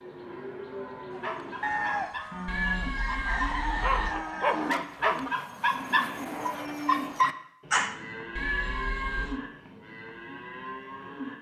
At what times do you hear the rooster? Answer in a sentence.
The rooster can be heard from 1.6 to 4.8 s.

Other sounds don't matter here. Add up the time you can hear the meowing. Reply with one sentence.
The meowing can be heard for 3 seconds in total.